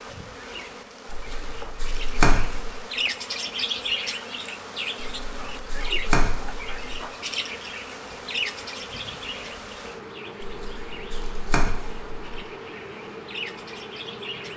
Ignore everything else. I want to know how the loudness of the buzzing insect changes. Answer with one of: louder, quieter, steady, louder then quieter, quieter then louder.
steady.